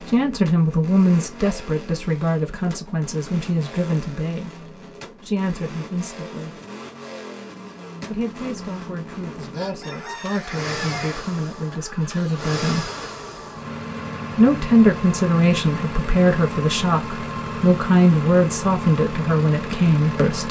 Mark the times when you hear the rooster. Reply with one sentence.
You can hear the rooster from 9.5 to 11.2 s.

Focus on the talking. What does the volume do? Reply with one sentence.
The loudness of the talking goes down, then up.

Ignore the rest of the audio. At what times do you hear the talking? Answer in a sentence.
You can hear the talking from 0.1 to 6.5 s, from 8.1 to 12.9 s and from 14.3 to 20.4 s.